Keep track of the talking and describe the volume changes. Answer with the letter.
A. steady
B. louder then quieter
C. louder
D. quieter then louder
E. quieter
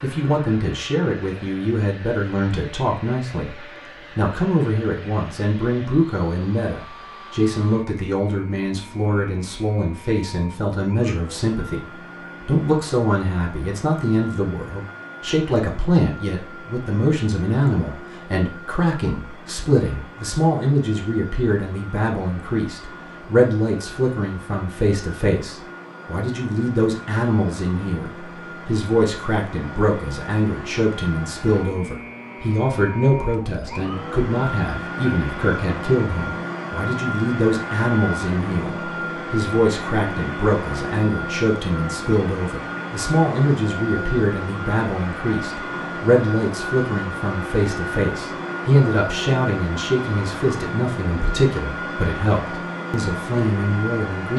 A.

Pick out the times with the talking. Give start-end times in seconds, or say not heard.
0.0-54.3.